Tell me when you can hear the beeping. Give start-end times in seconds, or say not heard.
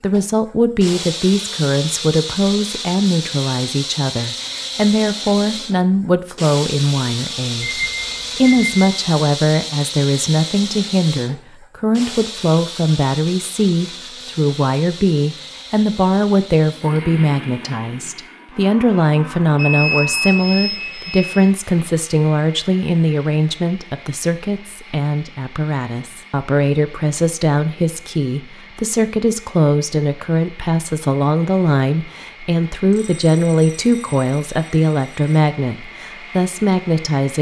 7.6-8.9, 19.6-21.5, 32.9-35.2.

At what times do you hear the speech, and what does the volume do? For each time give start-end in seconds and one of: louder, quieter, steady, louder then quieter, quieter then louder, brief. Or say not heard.
0.0-37.3 steady.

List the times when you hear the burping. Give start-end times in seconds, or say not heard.
not heard.